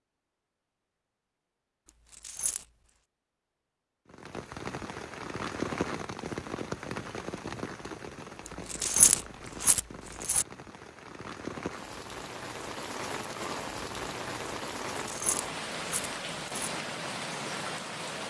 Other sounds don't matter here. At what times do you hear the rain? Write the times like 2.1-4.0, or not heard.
4.0-18.2.